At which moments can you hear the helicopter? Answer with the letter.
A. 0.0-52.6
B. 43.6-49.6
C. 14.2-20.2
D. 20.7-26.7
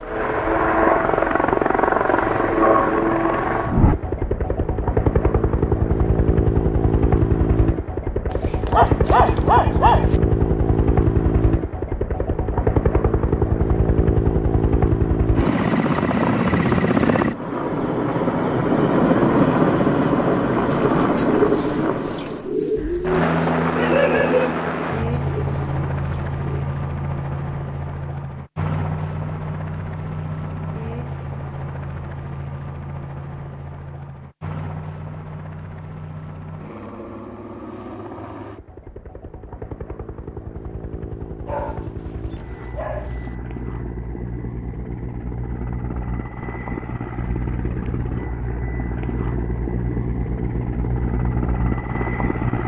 A.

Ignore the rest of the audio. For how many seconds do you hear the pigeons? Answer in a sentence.
You can hear the pigeons for 6 seconds altogether.